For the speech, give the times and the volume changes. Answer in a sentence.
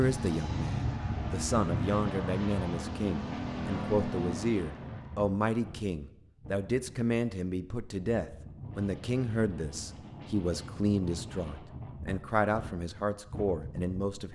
The speech can be heard from 0.0 to 14.3 s, at a steady volume.